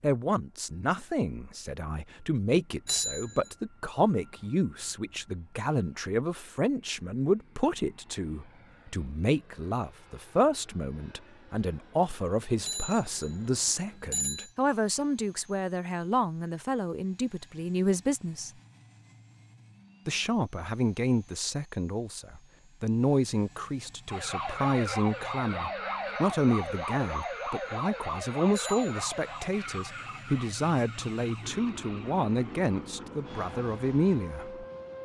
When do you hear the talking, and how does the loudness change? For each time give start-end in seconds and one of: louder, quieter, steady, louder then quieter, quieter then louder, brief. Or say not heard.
0.0-18.5 steady
20.1-34.6 steady.